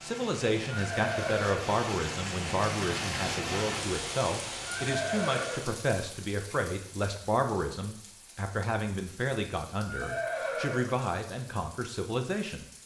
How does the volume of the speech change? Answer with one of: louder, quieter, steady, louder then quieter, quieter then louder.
steady.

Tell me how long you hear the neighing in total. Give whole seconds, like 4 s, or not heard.
3 s.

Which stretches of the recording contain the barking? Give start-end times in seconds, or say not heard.
not heard.